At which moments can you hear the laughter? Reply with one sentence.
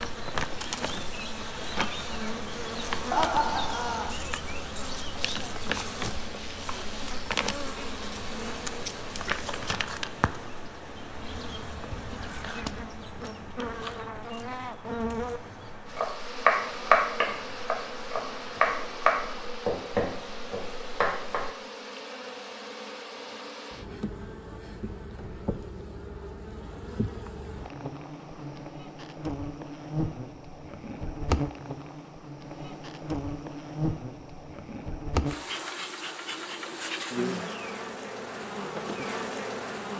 The laughter can be heard from 3.1 to 4.2 s.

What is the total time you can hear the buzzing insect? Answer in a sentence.
The buzzing insect can be heard for 40 seconds in total.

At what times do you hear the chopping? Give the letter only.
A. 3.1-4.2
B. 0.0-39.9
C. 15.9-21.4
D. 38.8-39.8
C.